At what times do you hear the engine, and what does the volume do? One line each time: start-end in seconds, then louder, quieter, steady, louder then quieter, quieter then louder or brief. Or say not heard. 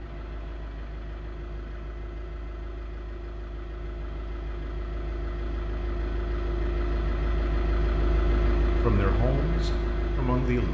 0.0-10.6 louder.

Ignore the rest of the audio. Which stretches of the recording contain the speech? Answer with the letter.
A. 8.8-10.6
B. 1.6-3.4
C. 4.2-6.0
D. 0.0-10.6
A.